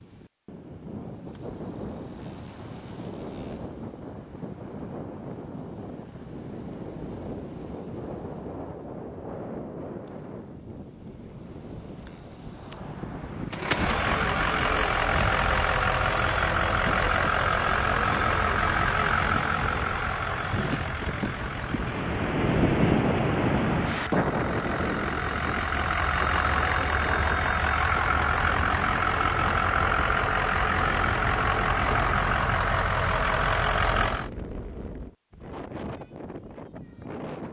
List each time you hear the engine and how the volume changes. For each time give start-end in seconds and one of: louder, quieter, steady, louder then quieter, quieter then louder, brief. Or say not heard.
13.5-34.3 quieter then louder.